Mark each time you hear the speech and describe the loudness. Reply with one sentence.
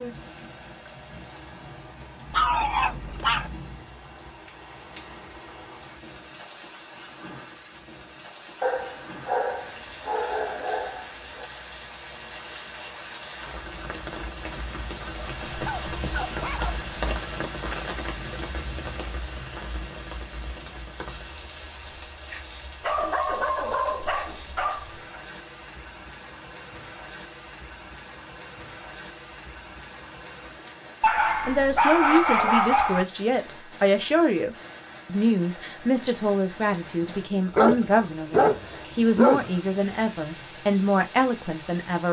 The speech can be heard from 31.4 to 42.0 s, at a steady volume.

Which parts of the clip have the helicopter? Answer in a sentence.
The helicopter can't be heard in this clip.